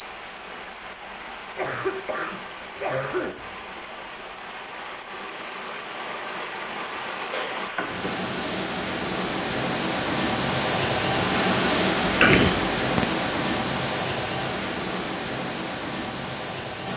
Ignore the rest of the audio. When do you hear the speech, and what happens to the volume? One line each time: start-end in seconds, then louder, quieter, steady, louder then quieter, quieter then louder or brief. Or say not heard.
not heard.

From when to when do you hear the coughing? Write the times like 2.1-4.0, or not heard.
1.6-3.4, 7.3-8.1, 12.1-13.1.